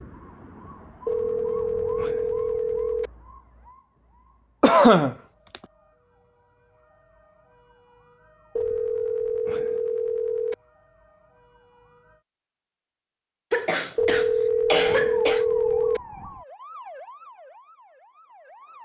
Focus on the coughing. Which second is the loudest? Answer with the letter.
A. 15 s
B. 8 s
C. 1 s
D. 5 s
D.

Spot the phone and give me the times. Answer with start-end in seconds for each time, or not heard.
1.1-3.1, 8.6-10.6, 13.9-16.0.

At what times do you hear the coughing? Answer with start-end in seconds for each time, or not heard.
4.6-5.5, 13.5-15.4.